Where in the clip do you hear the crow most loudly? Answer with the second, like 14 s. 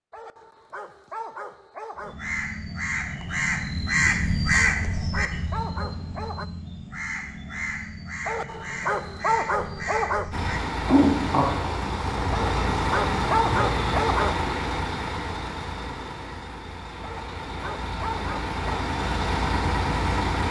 5 s.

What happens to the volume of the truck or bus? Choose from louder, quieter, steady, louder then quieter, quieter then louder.
quieter then louder.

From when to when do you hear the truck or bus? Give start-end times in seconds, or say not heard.
10.3-20.4.